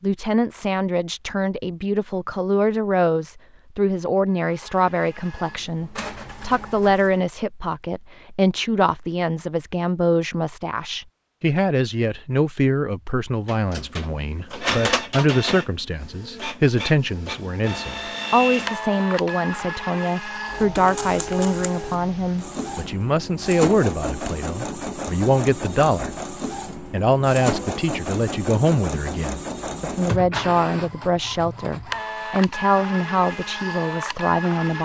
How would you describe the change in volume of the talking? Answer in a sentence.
The loudness of the talking stays about the same.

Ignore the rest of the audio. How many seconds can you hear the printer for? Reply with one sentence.
The printer can be heard for 24 seconds in total.